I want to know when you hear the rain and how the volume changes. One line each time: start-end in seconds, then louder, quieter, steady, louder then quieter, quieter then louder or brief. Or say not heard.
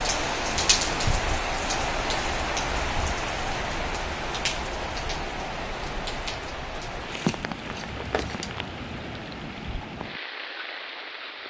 0.0-11.4 quieter.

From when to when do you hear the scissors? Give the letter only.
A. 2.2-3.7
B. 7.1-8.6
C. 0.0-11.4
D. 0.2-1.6
B.